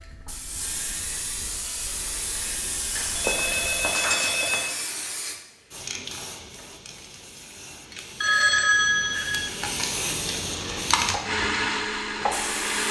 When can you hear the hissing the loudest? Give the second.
11 s.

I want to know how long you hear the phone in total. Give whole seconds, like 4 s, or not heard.
3 s.